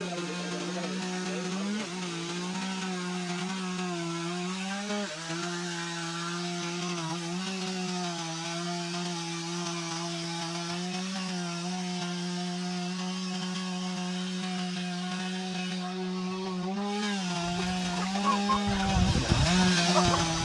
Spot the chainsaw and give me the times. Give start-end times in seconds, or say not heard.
0.0-20.4.